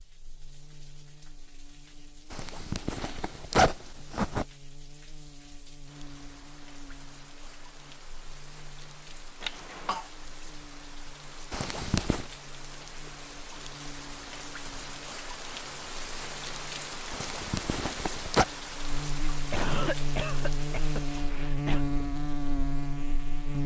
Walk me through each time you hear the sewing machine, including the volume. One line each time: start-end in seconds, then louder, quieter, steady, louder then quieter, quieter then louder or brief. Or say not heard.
not heard.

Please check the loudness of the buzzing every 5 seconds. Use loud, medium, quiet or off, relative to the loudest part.
quiet, quiet, quiet, medium, loud.